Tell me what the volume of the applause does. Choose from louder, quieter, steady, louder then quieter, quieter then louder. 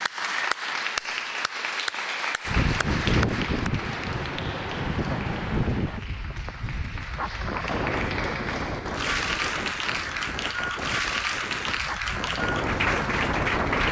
quieter then louder.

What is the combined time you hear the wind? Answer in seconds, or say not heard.
11 s.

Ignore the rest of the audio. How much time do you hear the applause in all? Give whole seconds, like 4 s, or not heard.
14 s.